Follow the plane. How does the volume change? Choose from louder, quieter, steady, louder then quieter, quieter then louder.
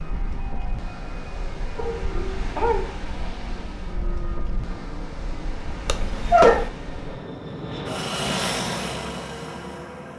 louder.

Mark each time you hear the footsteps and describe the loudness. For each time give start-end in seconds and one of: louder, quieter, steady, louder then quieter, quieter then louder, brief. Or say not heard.
not heard.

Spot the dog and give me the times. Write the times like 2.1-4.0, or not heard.
1.8-3.3, 5.8-6.7.